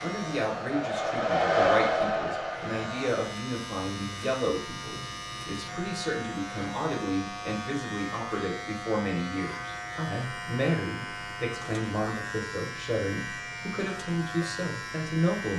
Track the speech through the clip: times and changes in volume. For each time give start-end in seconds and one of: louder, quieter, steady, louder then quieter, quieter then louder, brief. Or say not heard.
0.0-15.5 steady.